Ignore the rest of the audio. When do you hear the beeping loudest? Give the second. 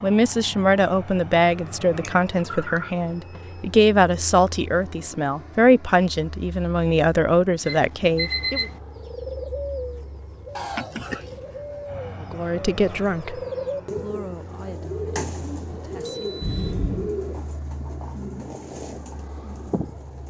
8 s.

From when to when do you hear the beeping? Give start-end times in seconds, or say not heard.
3.0-3.6, 7.7-8.8, 16.1-16.6.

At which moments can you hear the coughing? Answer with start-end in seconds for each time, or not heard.
1.9-2.9, 10.6-11.4, 16.4-17.1.